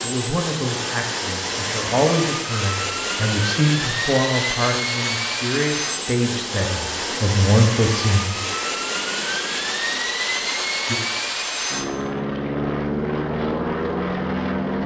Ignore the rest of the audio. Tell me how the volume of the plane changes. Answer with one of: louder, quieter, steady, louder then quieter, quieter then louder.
steady.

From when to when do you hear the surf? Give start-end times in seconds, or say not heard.
not heard.